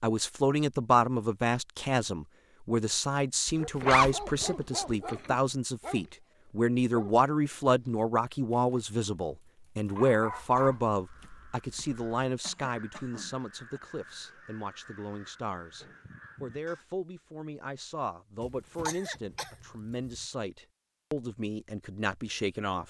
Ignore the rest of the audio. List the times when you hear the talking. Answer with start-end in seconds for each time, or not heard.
0.0-22.8.